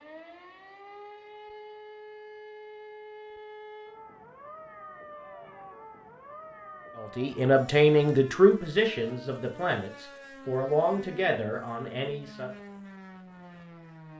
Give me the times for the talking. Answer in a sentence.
You can hear the talking from 7.0 to 12.5 s.